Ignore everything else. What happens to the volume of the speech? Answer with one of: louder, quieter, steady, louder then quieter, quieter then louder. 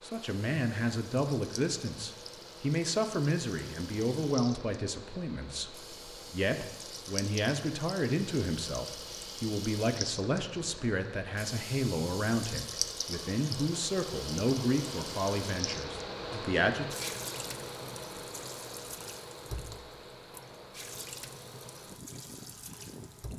steady.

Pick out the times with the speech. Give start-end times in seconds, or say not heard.
0.0-16.9.